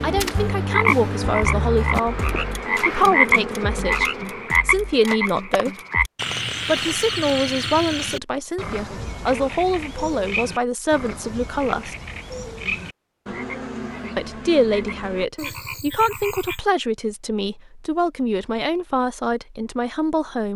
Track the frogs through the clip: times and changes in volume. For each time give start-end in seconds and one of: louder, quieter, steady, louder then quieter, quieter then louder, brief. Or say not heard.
0.0-16.6 quieter.